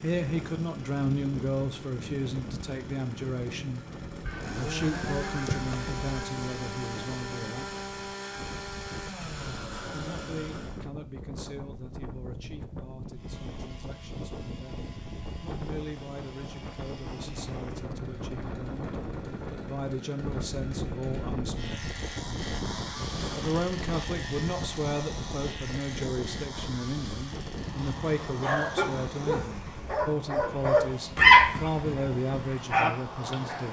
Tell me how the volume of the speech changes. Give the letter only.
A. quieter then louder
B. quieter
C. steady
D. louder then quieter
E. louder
A.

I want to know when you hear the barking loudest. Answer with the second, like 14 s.
31 s.